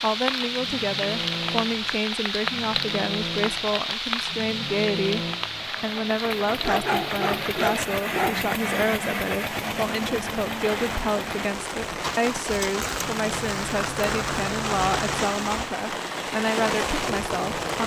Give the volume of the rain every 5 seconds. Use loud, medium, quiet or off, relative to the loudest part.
loud, medium, loud, loud.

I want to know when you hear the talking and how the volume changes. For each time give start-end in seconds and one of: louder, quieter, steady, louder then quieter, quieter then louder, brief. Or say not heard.
0.0-17.8 steady.